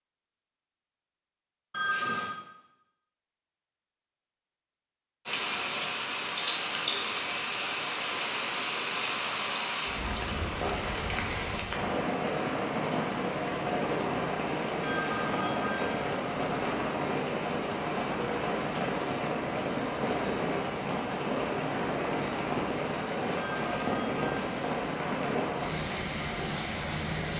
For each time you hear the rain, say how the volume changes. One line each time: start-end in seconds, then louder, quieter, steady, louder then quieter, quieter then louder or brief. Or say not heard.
5.2-27.3 steady.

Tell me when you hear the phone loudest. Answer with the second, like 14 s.
2 s.